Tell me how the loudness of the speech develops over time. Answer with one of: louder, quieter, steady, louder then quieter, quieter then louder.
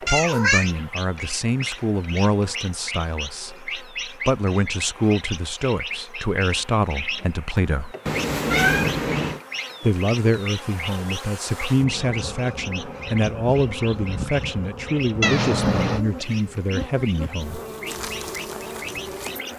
steady.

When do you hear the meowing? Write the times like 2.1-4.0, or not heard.
0.1-0.7, 8.1-9.4, 15.2-16.1.